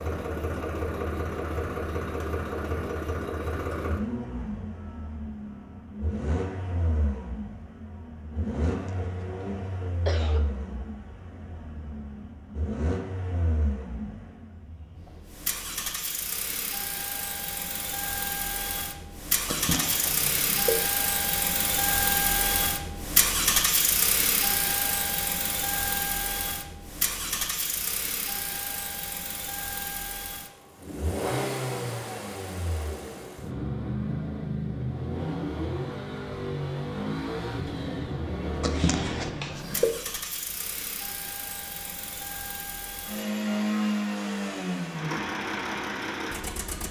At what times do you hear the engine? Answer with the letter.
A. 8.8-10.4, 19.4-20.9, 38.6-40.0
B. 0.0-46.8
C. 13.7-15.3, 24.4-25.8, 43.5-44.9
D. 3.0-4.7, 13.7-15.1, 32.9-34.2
B.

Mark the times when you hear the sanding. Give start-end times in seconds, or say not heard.
not heard.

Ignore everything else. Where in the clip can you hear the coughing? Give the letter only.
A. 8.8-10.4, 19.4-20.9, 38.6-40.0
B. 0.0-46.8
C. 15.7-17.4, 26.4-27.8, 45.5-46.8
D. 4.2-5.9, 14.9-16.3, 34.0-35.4
A.